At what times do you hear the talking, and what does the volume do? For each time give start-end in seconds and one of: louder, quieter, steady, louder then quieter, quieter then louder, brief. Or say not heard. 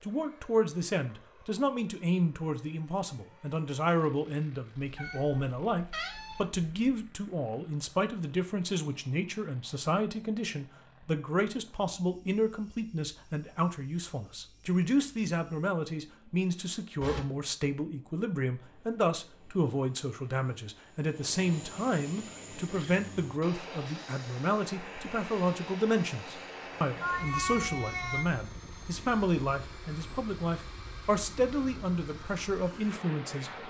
0.0-33.6 steady.